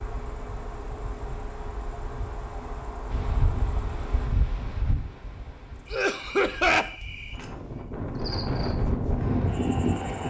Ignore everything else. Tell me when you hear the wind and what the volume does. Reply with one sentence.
You can hear the wind from 3.0 to 10.2 s, getting quieter then louder.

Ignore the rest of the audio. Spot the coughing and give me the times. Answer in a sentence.
The coughing can be heard from 5.9 to 6.9 s.